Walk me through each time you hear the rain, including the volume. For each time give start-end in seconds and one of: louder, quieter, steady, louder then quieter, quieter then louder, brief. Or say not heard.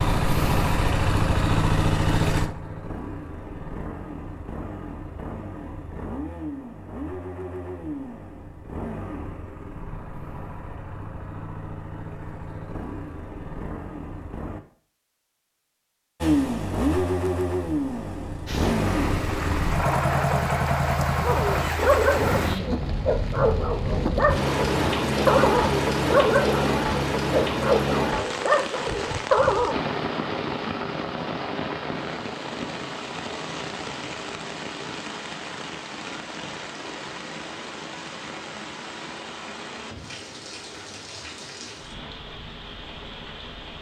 18.4-43.7 louder then quieter.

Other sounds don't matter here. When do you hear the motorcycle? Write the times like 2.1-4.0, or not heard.
0.0-14.6, 16.2-22.6.